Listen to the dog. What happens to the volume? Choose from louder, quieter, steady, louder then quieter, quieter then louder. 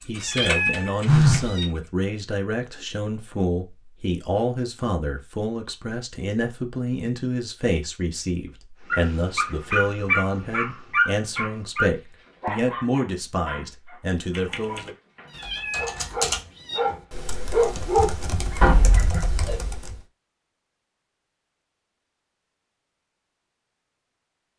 quieter then louder.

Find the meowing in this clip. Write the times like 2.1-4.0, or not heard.
0.1-1.7, 15.3-16.8.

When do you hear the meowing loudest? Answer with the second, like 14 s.
1 s.